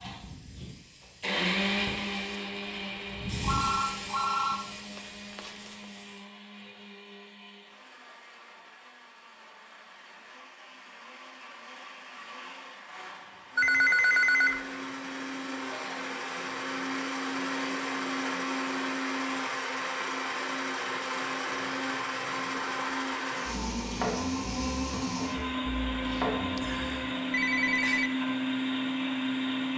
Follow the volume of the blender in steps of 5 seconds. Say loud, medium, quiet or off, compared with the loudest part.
loud, quiet, quiet, loud, loud, loud.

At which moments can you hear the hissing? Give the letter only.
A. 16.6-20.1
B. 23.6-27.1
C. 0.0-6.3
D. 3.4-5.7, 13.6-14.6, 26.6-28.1
C.